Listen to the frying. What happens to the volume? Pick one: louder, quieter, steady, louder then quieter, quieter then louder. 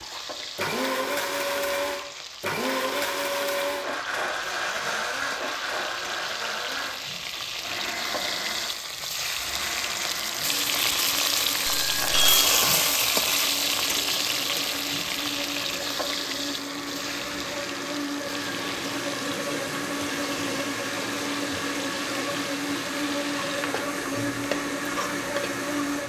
louder then quieter.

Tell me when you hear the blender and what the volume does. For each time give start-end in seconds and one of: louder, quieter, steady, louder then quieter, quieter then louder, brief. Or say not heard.
0.0-26.0 quieter then louder.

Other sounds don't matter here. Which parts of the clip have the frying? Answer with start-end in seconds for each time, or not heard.
0.0-26.0.